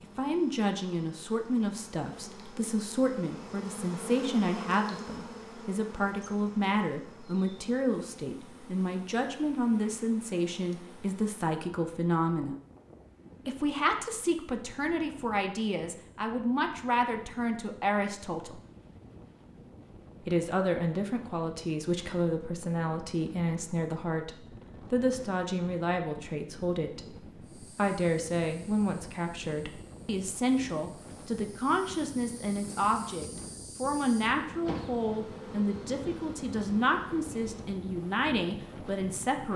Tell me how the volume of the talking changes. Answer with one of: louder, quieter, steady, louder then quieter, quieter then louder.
steady.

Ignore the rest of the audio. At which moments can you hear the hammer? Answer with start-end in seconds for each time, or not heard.
not heard.